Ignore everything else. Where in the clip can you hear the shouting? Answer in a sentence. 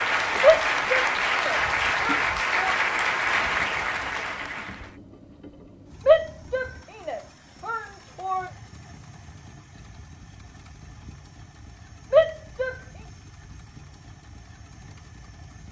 You can hear the shouting from 0.4 to 2.8 s, from 6.0 to 8.5 s and from 12.1 to 12.8 s.